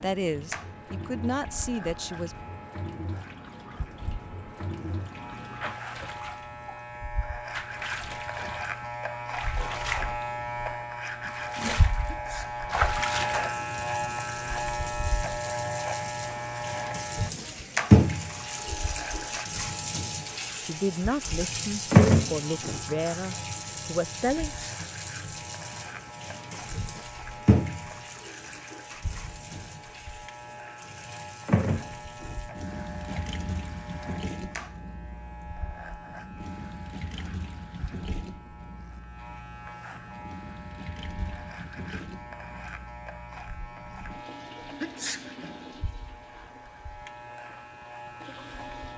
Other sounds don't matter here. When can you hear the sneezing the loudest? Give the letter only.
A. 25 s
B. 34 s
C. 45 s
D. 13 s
C.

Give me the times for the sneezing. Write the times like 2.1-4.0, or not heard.
12.1-12.6, 24.4-24.9, 44.8-45.3.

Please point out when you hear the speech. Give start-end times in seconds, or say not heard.
0.0-2.4, 20.6-24.6.